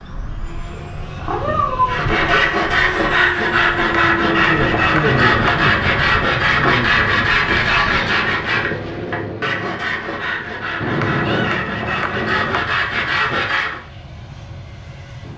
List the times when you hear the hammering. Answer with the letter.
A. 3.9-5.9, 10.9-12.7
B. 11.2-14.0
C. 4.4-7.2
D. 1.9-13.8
A.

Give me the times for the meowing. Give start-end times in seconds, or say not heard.
0.7-2.3, 7.4-8.3, 10.8-11.5.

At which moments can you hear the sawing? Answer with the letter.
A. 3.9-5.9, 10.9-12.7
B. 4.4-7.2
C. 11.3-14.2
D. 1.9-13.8
D.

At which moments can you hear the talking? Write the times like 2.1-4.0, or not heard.
4.4-7.2.